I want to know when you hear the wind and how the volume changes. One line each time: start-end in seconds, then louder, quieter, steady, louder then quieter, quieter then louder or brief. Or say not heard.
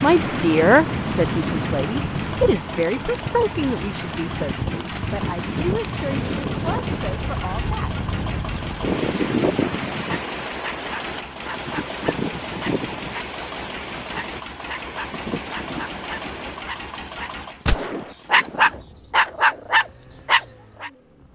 0.0-21.3 quieter.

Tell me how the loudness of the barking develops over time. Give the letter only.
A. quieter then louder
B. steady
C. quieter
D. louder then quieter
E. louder
E.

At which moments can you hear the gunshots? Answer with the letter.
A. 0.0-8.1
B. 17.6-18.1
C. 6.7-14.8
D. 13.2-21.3
B.